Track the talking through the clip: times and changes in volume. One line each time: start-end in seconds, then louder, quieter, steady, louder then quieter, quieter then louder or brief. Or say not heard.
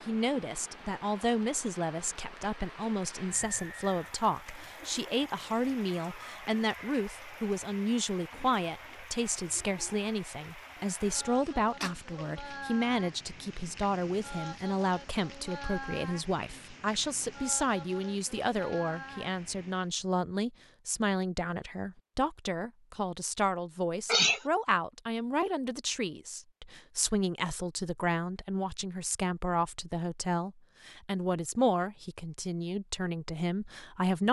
0.0-34.2 steady.